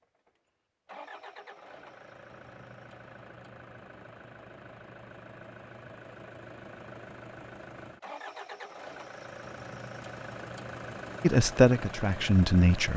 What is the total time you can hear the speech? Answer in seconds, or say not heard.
2 s.